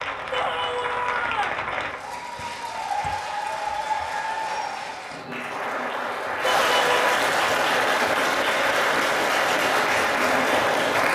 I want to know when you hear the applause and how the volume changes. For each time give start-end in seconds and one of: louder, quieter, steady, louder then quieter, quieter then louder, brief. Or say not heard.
0.0-11.1 louder.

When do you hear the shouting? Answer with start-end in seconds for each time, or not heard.
0.3-1.6, 6.4-7.0.